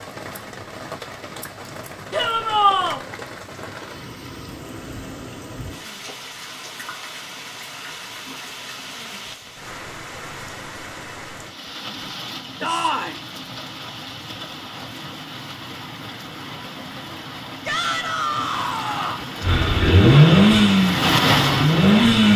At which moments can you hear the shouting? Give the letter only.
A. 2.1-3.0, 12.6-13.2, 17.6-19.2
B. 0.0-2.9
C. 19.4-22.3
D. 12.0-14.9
A.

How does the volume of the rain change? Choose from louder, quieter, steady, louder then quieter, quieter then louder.
louder.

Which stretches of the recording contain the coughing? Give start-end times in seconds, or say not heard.
not heard.